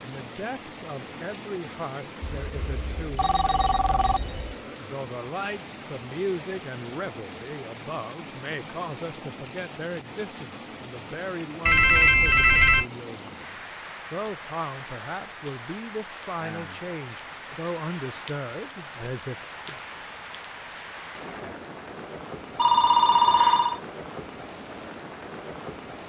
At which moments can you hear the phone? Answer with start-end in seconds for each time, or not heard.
2.2-4.5, 11.7-12.8, 22.6-23.8.